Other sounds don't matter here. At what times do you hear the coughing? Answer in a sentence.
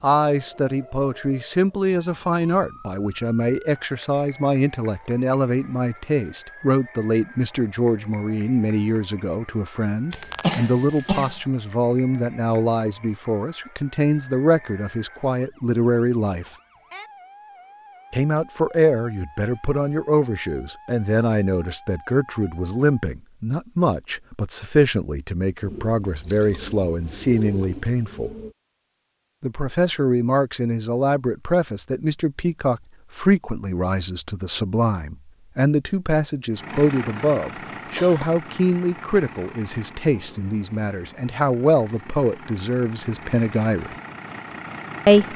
The coughing can be heard from 10.1 to 11.4 s and from 37.8 to 38.4 s.